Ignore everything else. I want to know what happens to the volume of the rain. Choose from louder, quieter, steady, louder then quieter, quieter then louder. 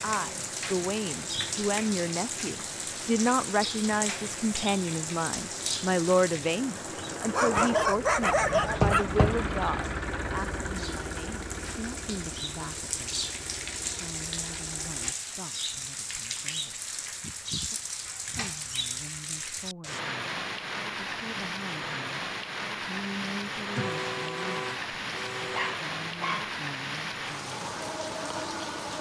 quieter then louder.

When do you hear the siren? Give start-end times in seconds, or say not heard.
not heard.